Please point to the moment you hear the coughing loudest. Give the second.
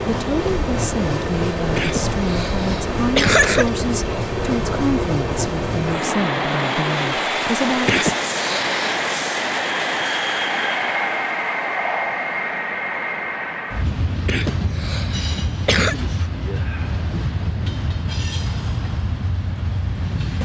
3 s.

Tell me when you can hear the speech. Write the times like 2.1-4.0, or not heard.
0.1-8.0.